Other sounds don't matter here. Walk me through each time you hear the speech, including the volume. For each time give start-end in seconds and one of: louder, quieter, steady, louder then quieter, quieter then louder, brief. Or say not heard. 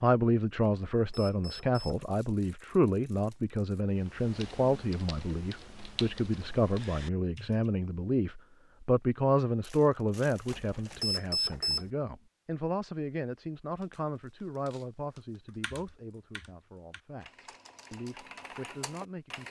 0.0-19.4 quieter.